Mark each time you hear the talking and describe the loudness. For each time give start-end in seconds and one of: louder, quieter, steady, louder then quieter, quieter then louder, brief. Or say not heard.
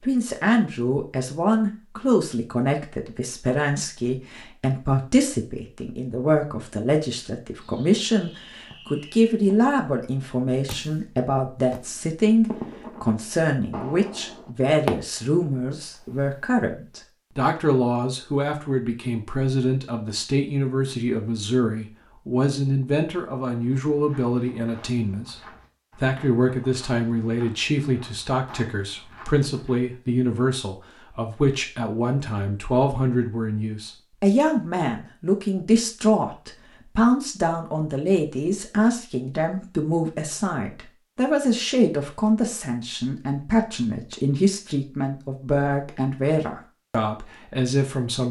0.0-48.2 steady.